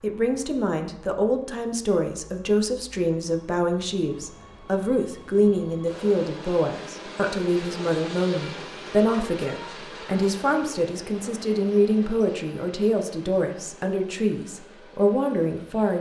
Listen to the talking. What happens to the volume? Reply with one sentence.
The volume of the talking stays about the same.